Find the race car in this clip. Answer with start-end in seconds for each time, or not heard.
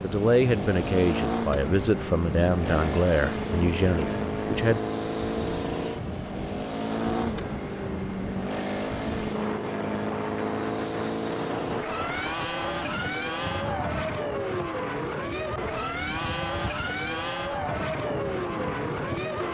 0.0-19.4.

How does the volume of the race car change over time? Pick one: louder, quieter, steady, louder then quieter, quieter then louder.
steady.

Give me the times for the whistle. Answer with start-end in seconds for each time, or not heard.
not heard.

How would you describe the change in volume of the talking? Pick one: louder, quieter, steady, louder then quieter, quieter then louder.
steady.